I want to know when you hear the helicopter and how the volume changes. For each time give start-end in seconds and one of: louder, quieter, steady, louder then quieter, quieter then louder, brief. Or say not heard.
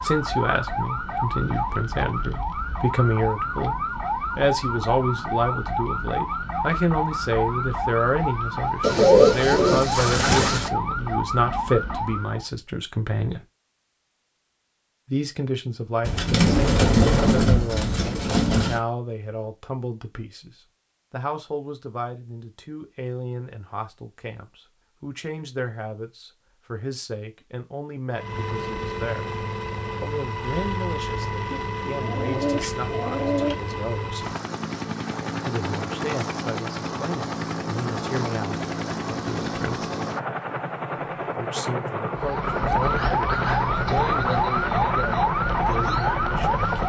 28.1-46.8 steady.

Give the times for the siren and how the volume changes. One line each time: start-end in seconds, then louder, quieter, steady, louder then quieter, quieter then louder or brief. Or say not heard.
0.0-12.5 steady
42.1-46.8 steady.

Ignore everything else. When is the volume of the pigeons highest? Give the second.
9 s.